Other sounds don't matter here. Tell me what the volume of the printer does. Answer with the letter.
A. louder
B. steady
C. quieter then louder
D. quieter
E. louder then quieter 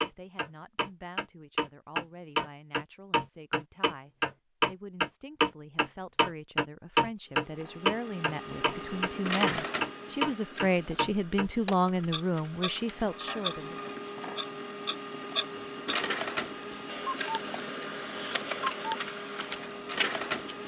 C.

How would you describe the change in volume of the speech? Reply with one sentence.
The loudness of the speech goes up.